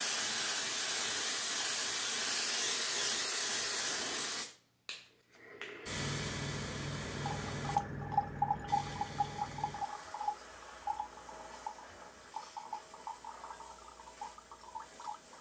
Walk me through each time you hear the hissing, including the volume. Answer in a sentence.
The hissing can be heard from 0.0 to 15.3 s, getting quieter.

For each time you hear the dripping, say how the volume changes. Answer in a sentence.
You can hear the dripping from 7.2 to 15.3 s, getting quieter.